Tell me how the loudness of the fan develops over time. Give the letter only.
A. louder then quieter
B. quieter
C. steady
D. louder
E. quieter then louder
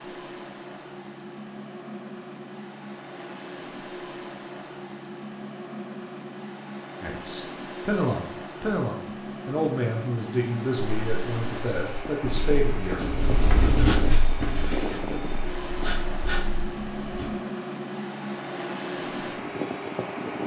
D.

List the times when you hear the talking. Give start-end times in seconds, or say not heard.
7.0-13.1.